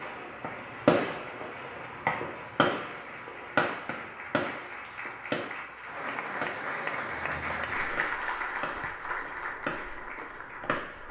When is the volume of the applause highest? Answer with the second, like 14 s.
8 s.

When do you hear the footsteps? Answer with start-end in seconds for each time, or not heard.
not heard.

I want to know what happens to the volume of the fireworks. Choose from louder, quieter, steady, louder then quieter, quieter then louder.
quieter.